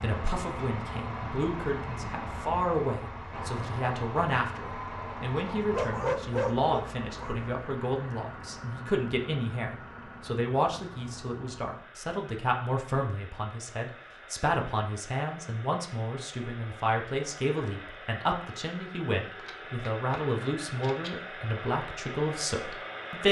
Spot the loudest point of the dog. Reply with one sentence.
The volume of the dog peaks at 6 seconds.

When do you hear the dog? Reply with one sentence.
You can hear the dog from 5.7 to 7.5 s.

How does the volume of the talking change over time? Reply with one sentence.
The loudness of the talking stays about the same.